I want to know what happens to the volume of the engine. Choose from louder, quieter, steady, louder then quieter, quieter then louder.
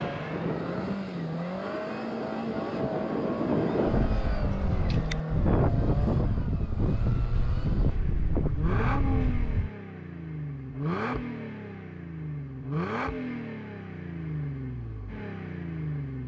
steady.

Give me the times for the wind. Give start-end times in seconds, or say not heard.
0.0-9.7.